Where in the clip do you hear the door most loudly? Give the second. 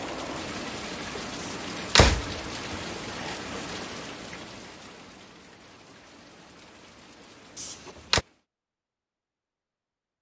2 s.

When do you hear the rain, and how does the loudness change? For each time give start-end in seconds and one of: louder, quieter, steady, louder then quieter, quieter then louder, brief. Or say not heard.
0.0-8.4 quieter.